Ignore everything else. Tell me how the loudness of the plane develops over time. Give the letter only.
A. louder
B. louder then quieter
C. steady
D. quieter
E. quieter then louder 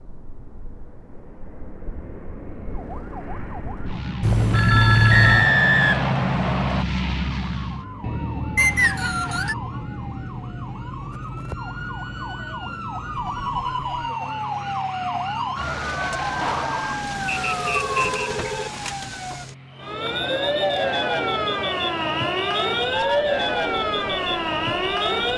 B.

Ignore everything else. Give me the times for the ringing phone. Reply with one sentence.
The ringing phone can be heard from 4.2 to 5.5 s, from 13.2 to 14.0 s and from 17.4 to 18.7 s.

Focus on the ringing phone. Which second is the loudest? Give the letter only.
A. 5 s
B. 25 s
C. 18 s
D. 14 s
A.